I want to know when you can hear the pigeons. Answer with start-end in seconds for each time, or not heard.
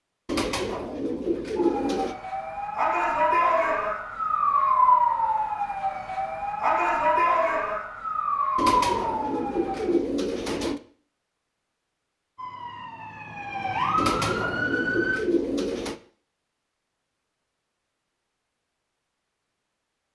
0.2-2.1, 8.6-10.8, 13.9-15.9.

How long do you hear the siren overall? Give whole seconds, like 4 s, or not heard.
11 s.